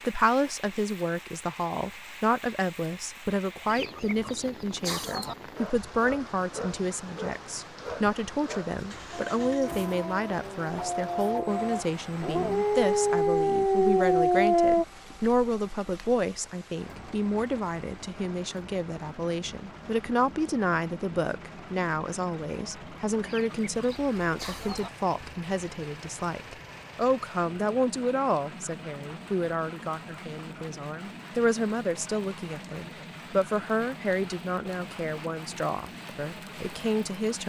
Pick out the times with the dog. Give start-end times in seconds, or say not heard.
5.5-14.8.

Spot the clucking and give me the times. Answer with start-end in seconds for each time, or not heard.
3.6-5.3, 23.2-24.9.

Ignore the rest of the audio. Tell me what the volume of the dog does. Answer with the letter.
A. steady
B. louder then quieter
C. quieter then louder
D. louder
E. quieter
D.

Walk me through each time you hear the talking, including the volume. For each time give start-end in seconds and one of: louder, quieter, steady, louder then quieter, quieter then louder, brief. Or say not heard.
0.0-37.4 steady.